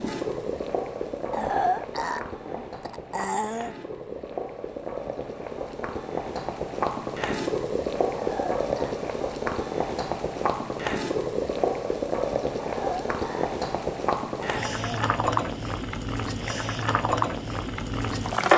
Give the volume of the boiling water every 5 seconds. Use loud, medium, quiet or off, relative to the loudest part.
medium, loud, loud, loud.